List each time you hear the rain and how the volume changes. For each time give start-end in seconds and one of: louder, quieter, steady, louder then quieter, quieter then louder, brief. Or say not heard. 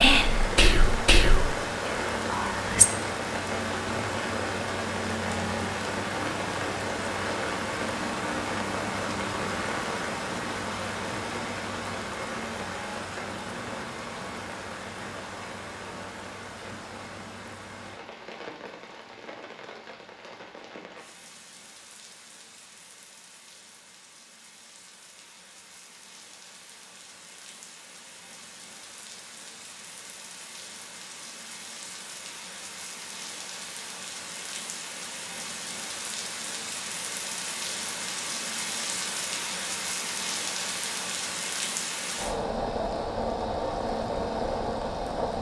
0.0-45.3 quieter then louder.